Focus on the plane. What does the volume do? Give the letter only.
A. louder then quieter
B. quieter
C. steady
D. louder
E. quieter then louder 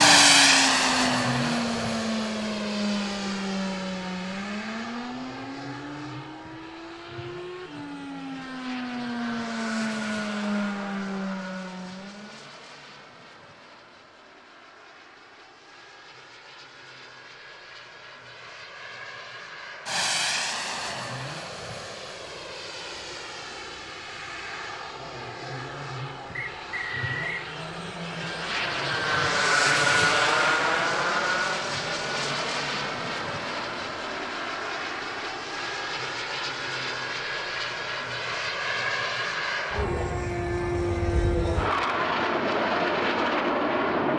E.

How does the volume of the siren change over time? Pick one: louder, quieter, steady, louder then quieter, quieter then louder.
quieter then louder.